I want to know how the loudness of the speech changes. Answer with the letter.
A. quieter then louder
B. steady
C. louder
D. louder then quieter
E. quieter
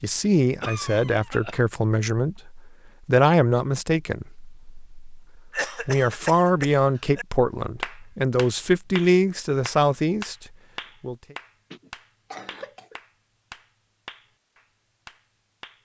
B.